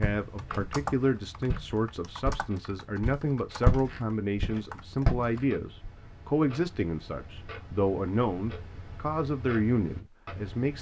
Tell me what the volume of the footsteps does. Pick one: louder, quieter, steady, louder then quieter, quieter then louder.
louder then quieter.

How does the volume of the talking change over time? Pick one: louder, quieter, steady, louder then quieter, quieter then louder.
steady.